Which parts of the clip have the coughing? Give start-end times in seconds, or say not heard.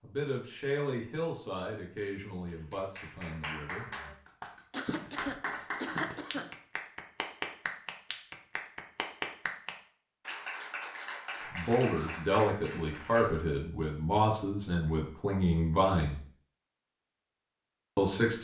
4.7-6.5, 12.8-13.4.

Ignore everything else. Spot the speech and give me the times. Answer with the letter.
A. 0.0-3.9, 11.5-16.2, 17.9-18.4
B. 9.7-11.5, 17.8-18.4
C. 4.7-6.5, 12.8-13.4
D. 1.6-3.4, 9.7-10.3
A.